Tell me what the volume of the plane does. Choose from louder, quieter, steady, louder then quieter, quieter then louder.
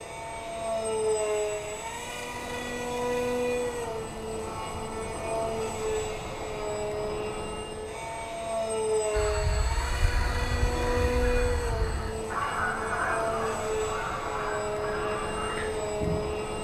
steady.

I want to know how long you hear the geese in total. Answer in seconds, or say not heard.
7 s.